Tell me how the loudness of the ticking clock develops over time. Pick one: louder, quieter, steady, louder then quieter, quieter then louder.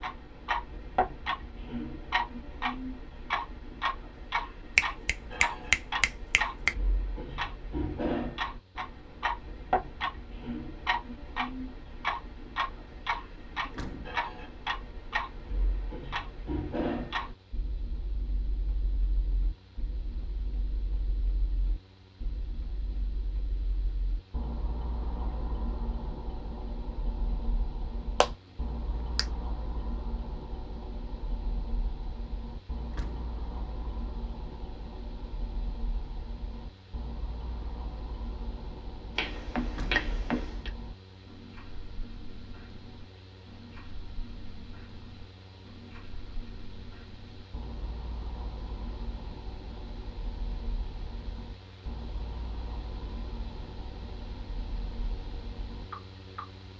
quieter.